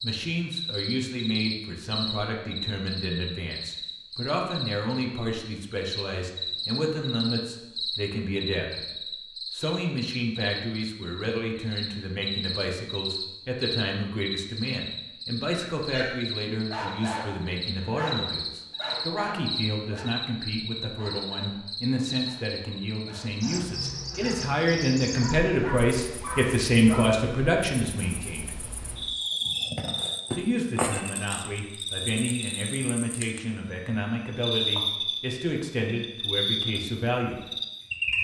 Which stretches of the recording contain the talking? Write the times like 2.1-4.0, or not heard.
0.0-8.8, 9.5-28.5, 30.3-37.4.